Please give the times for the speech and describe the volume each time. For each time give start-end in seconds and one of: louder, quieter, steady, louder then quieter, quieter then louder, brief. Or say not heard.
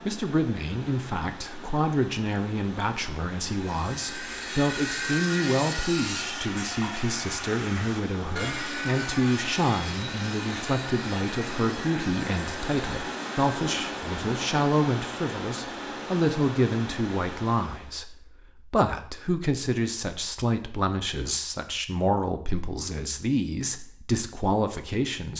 0.0-25.3 steady.